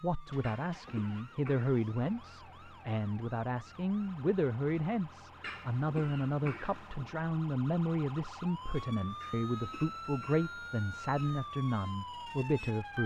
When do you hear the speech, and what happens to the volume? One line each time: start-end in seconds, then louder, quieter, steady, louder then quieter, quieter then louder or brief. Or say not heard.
0.0-13.0 steady.